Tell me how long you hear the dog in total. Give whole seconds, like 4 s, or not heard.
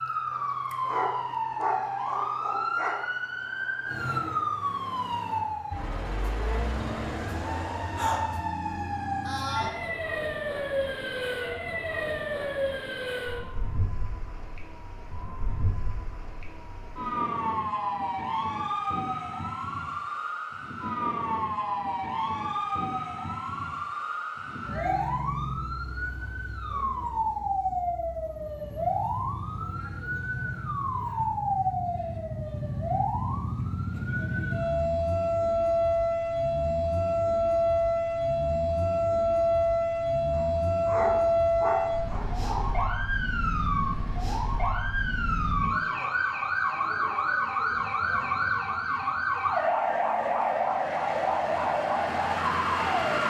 5 s.